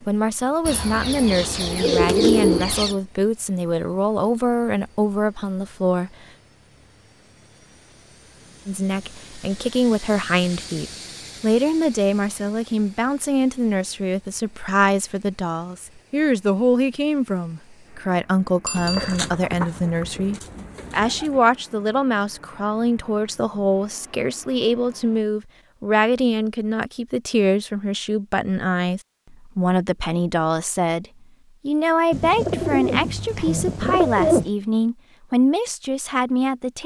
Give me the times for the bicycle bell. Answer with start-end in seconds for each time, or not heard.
18.6-19.3.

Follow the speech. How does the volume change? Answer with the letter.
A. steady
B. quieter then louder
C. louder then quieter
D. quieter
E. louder
A.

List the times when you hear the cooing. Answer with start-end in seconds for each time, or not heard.
0.7-3.0, 18.8-21.4, 32.1-34.5.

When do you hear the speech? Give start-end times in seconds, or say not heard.
0.1-6.2, 8.7-31.1, 31.6-36.8.